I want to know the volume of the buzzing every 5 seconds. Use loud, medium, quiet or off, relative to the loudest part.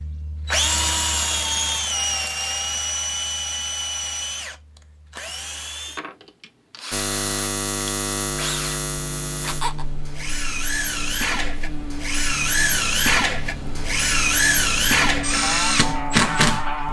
off, loud, medium, medium.